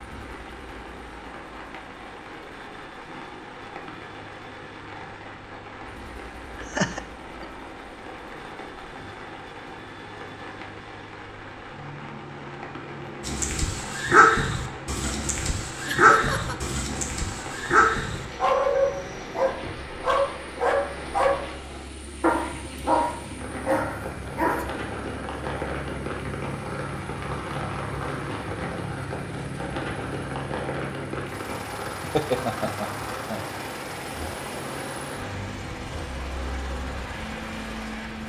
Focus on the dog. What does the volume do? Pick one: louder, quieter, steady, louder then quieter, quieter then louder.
steady.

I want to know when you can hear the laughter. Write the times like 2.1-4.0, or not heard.
6.5-7.5, 15.8-16.6, 32.0-33.5.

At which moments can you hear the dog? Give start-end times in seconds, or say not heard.
13.2-24.6.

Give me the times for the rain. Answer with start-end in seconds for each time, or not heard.
0.0-38.2.